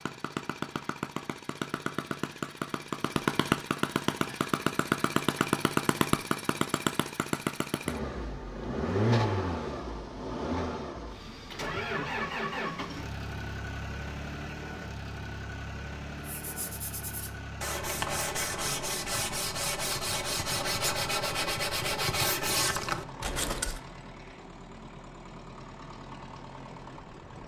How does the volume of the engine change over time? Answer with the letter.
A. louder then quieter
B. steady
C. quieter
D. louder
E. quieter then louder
C.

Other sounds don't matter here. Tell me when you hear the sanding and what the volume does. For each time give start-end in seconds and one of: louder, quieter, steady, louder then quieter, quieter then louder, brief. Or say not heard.
16.2-23.8 louder.